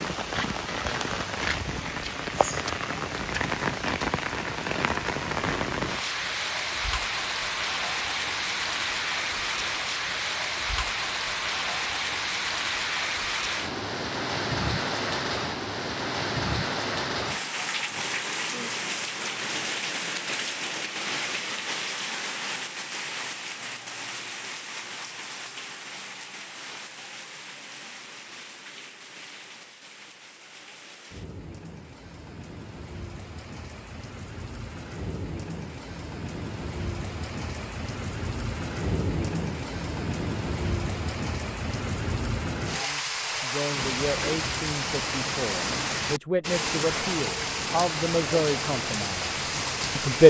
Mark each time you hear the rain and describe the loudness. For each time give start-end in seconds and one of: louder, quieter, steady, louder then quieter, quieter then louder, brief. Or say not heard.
0.0-50.2 quieter then louder.